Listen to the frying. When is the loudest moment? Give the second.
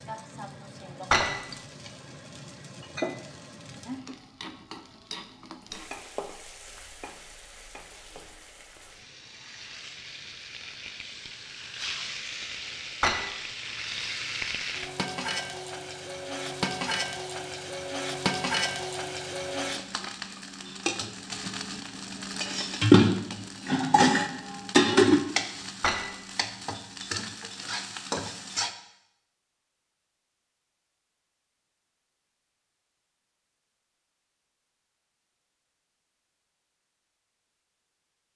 23 s.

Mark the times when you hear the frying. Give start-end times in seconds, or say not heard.
0.0-28.8.